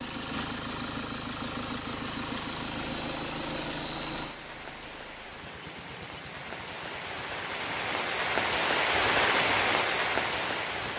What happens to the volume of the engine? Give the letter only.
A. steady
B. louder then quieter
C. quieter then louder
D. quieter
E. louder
D.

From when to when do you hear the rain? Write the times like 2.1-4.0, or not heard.
1.8-10.9.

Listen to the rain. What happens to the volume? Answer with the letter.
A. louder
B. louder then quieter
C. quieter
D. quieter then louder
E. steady
A.